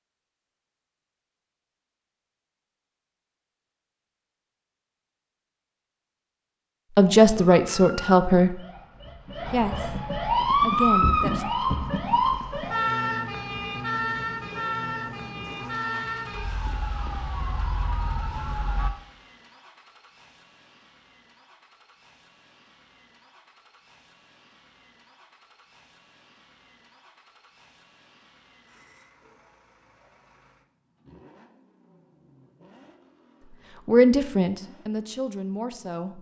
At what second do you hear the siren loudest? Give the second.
11 s.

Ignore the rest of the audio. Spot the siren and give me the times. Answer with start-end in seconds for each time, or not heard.
7.0-18.9.